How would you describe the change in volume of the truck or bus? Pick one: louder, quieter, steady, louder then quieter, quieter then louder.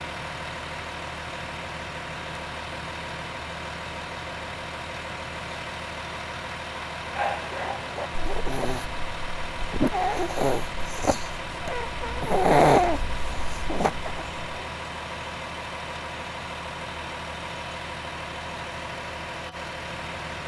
steady.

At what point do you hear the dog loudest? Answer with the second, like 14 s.
13 s.